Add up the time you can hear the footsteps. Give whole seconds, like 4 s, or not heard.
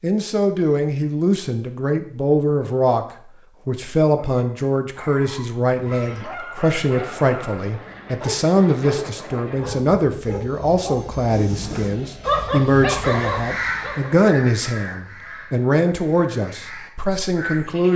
not heard.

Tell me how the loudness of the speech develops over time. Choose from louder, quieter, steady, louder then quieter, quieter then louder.
steady.